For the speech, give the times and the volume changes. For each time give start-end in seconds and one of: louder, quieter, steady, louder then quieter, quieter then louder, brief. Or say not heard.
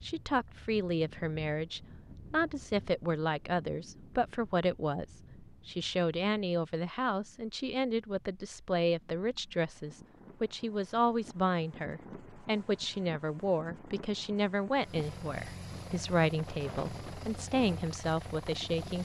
0.0-19.0 steady.